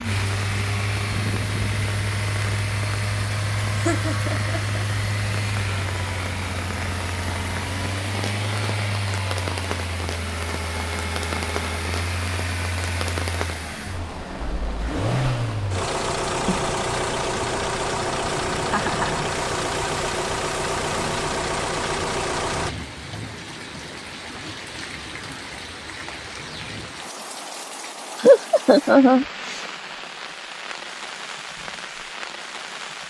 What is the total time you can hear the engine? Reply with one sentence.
You can hear the engine for 23 seconds altogether.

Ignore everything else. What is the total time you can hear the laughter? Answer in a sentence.
The laughter can be heard for 3 seconds in total.